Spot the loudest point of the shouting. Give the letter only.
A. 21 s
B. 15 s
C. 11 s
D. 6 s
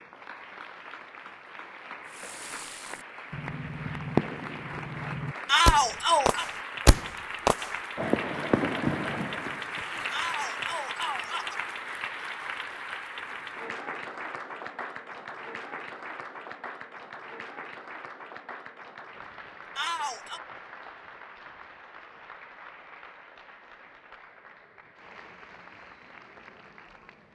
D.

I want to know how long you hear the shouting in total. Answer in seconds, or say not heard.
3 s.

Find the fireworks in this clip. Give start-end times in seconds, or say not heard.
2.1-9.7.